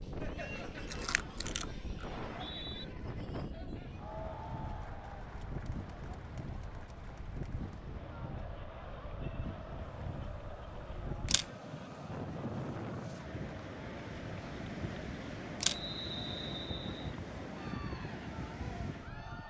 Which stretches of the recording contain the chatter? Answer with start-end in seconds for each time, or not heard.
0.0-19.4.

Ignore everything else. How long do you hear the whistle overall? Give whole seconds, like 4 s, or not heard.
2 s.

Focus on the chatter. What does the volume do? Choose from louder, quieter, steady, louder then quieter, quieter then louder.
steady.